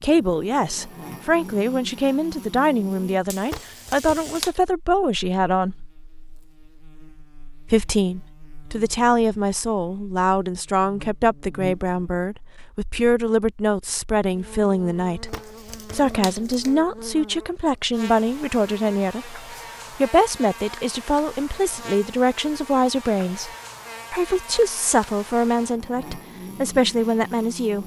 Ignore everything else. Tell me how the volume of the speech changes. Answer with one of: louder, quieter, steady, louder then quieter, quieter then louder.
steady.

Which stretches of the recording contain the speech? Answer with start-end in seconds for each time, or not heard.
0.0-5.8, 7.7-23.5, 24.1-27.8.